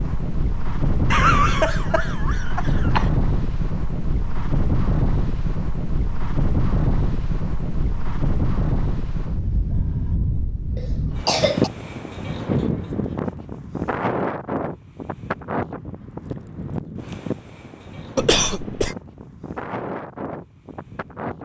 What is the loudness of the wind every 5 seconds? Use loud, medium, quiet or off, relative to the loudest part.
loud, loud, loud, medium, medium.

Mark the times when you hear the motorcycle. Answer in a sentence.
The motorcycle can't be heard in this clip.